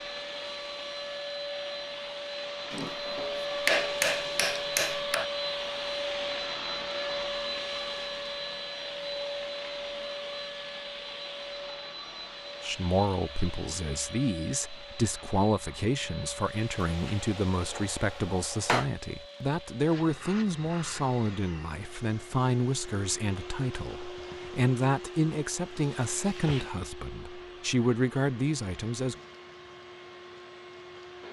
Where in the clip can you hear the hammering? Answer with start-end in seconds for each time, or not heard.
2.7-5.3, 16.8-18.9.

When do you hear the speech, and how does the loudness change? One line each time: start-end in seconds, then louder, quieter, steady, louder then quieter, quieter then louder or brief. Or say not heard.
12.6-29.1 steady.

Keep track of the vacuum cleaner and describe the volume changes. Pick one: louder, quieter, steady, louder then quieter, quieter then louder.
quieter.